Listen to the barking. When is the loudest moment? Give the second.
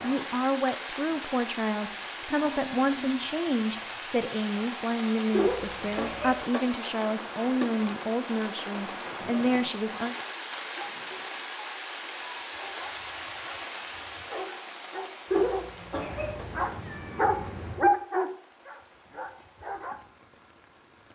18 s.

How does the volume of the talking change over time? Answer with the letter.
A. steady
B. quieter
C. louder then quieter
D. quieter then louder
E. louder
A.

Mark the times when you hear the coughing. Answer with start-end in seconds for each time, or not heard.
5.3-6.3, 15.3-16.3.